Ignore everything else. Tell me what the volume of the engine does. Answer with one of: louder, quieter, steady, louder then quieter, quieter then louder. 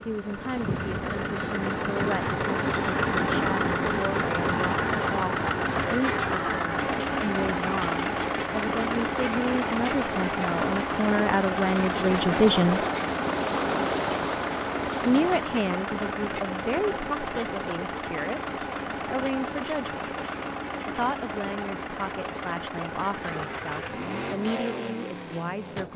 quieter.